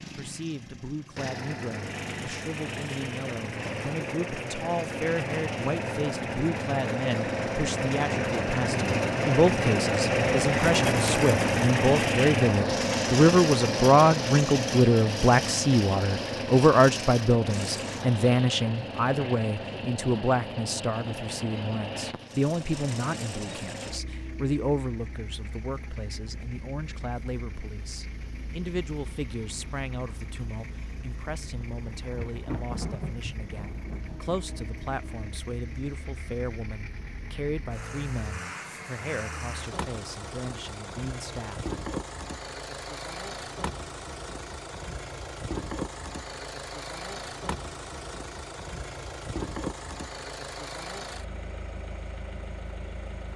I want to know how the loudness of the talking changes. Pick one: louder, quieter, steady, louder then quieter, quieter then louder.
louder then quieter.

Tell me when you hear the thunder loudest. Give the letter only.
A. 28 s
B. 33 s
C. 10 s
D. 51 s
B.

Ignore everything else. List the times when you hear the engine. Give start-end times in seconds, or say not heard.
0.0-53.3.